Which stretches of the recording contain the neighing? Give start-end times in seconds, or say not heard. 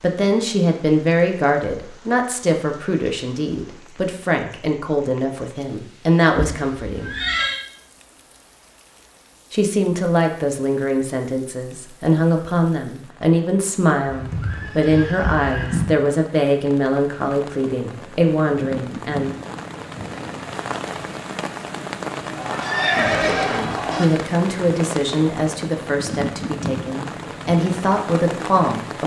6.3-7.6, 14.1-15.9, 22.4-24.1.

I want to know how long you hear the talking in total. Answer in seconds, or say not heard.
23 s.